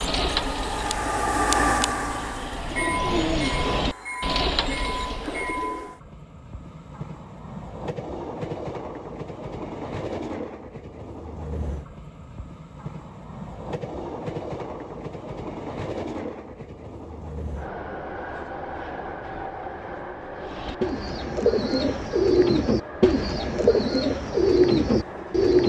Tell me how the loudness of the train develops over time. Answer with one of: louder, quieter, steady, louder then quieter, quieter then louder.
quieter.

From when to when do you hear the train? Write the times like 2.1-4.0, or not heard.
0.0-25.6.